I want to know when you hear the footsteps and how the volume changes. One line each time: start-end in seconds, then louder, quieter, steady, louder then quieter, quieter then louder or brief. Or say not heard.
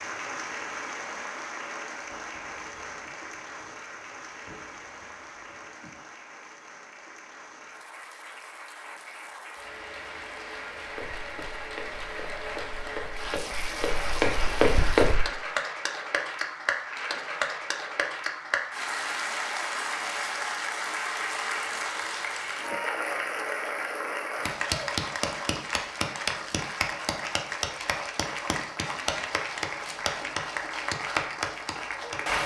10.8-15.2 louder.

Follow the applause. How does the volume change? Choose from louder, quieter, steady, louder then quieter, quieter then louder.
louder.